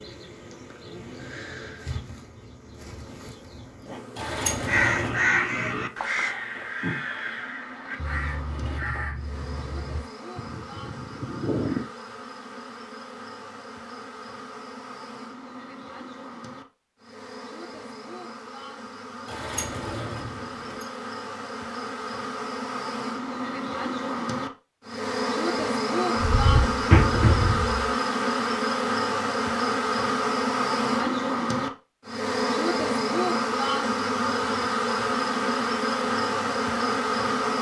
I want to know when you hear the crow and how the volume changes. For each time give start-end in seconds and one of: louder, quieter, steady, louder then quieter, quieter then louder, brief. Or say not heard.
4.7-11.9 quieter.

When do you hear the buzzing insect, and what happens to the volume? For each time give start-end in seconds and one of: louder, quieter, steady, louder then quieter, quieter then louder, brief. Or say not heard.
0.0-37.5 louder.